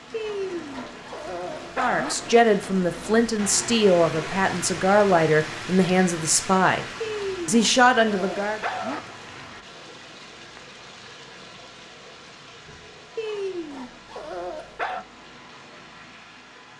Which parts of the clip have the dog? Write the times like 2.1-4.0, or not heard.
0.1-2.1, 7.0-9.0, 13.2-15.1.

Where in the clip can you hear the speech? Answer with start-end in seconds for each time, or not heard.
1.8-6.8, 7.5-8.6.